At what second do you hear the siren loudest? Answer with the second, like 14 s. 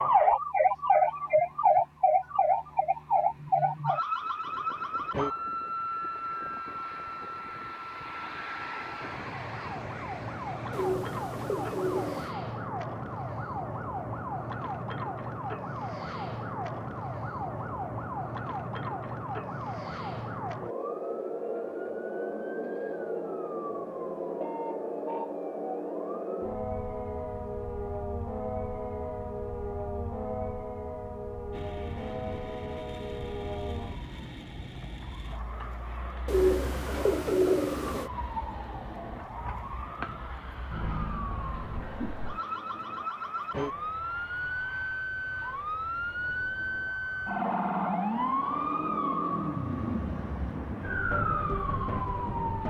1 s.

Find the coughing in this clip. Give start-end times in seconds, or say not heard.
not heard.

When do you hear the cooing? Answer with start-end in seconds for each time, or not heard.
10.7-12.3, 36.2-38.1.